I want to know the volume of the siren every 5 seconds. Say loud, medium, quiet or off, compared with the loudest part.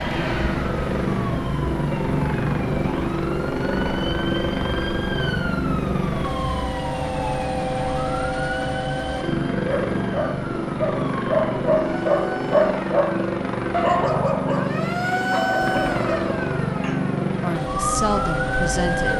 loud, medium, medium, loud.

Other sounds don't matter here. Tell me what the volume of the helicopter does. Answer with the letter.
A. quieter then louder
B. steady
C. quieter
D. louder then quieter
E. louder
B.